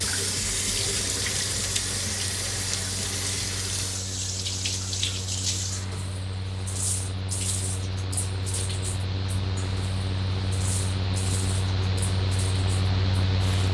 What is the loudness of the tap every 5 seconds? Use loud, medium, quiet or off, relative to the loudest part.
loud, medium, quiet.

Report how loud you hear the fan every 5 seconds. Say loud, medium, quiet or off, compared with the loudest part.
medium, medium, loud.